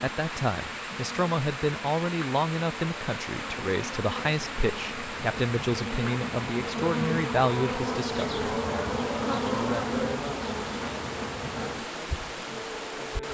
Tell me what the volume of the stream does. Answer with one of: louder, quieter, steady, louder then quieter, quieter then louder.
steady.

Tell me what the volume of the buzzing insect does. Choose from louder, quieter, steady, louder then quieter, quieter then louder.
louder then quieter.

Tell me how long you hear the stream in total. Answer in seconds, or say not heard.
13 s.